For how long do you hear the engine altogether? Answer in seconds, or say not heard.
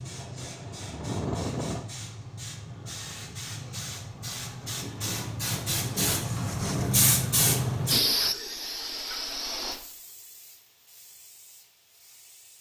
2 s.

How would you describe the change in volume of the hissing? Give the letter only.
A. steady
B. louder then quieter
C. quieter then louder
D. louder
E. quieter
B.